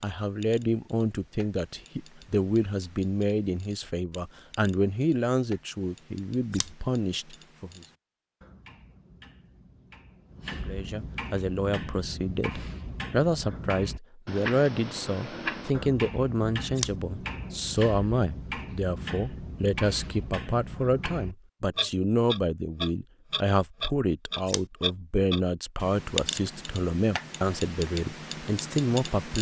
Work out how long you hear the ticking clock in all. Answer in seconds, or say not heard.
29 s.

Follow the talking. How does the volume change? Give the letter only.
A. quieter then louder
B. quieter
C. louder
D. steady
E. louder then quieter
D.